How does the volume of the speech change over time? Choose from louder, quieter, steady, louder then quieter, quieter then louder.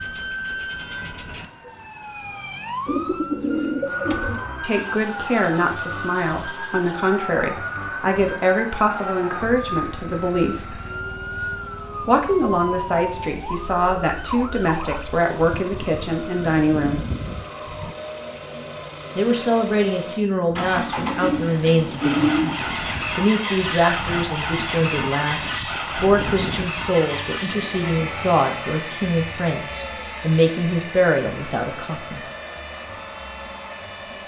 steady.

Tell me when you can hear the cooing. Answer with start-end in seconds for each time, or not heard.
2.9-4.5, 20.8-22.6.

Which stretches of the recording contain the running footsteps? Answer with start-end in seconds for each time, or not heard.
not heard.